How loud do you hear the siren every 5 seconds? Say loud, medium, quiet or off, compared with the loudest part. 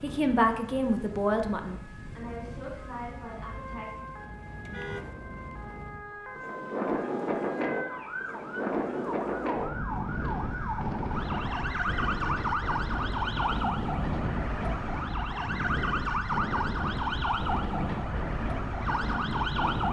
quiet, medium, loud, loud.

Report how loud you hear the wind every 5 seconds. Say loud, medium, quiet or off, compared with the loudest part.
quiet, loud, loud, loud.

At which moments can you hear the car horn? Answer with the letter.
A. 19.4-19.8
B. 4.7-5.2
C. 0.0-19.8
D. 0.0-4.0
B.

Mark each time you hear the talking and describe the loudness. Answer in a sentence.
You can hear the talking from 0.0 to 4.0 s, getting quieter.